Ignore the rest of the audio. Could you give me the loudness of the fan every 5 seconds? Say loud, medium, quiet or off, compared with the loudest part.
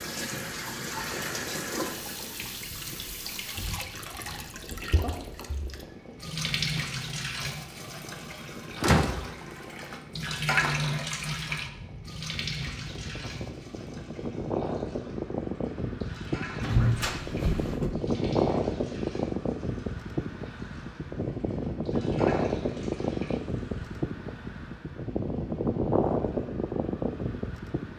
quiet, quiet, medium, loud, loud, loud.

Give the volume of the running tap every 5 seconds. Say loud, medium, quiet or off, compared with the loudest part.
loud, loud, loud, quiet, quiet, off.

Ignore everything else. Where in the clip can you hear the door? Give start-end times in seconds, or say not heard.
8.8-9.8, 16.6-17.9.